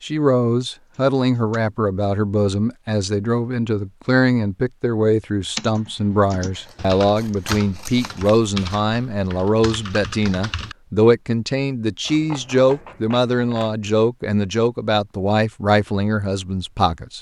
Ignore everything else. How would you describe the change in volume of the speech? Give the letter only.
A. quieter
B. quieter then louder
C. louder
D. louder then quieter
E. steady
E.